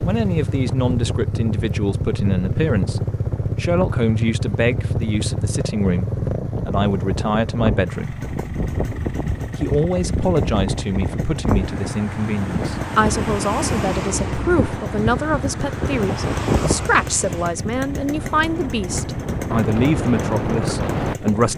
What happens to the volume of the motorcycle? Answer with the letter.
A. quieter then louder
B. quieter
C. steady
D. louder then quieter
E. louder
B.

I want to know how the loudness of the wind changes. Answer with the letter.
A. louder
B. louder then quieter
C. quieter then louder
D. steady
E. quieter
A.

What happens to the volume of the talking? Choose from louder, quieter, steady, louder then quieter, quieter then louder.
steady.